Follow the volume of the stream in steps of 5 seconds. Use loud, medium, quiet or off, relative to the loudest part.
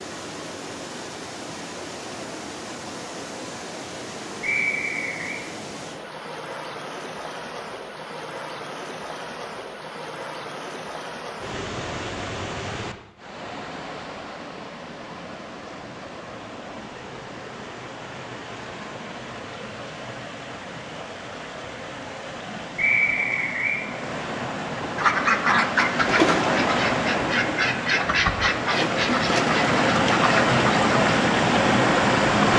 quiet, quiet, quiet, quiet, quiet, medium, loud.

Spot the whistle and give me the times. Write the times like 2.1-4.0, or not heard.
4.4-5.4, 22.8-23.8.